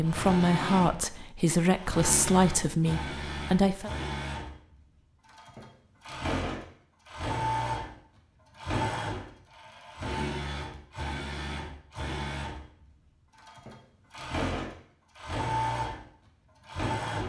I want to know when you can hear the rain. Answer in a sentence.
The rain can't be heard in this clip.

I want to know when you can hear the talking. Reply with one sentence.
The talking can be heard from 0.0 to 3.9 s.